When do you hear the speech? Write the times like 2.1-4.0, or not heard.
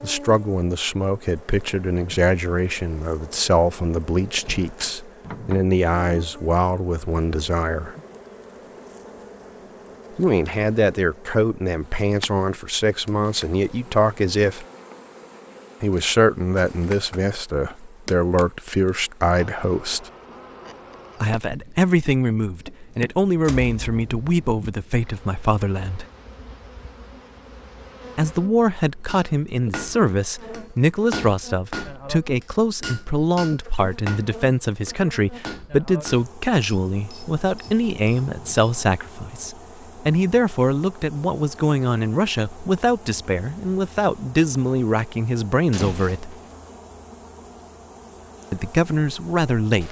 0.0-8.0, 10.2-14.7, 15.8-20.1, 21.2-26.1, 28.1-46.4, 48.5-49.8.